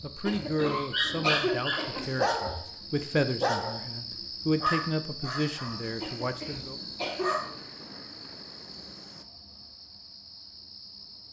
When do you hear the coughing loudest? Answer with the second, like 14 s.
1 s.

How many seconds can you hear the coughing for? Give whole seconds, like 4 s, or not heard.
3 s.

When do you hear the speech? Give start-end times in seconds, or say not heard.
0.0-6.8.